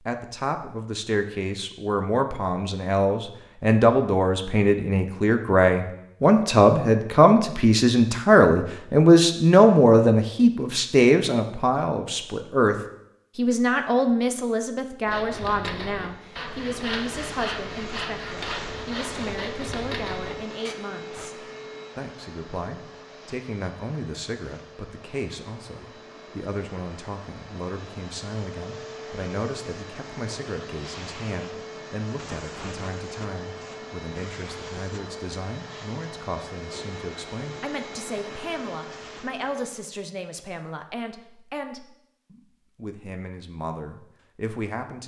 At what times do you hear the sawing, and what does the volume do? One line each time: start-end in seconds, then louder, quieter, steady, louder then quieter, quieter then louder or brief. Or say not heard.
15.1-20.8 steady.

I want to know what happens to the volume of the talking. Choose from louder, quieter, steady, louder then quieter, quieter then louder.
quieter.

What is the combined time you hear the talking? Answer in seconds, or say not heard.
44 s.